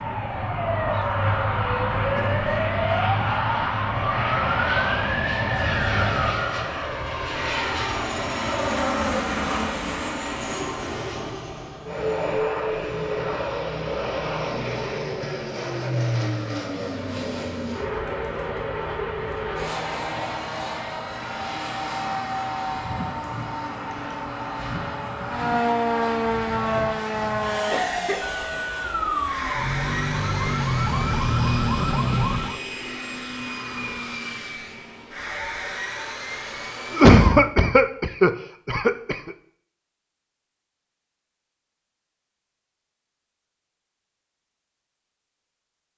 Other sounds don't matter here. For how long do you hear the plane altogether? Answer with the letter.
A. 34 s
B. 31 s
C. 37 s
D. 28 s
C.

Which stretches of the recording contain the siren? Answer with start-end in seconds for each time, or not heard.
0.0-6.5, 25.2-32.6.